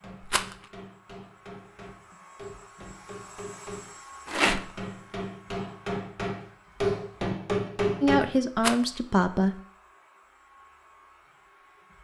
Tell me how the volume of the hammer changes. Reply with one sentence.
The loudness of the hammer goes up.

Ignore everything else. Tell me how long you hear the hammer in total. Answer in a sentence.
The hammer can be heard for 8 seconds in total.